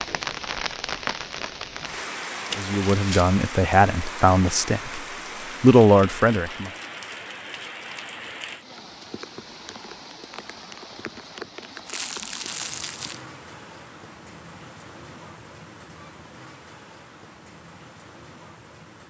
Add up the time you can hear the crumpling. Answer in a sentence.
The crumpling can be heard for 2 seconds in total.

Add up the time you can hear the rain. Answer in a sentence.
You can hear the rain for 19 seconds altogether.